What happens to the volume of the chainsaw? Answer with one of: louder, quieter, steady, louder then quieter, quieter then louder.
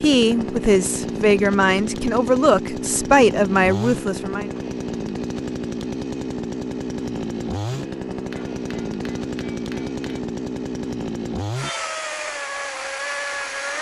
steady.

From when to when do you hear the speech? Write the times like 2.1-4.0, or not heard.
0.0-4.5.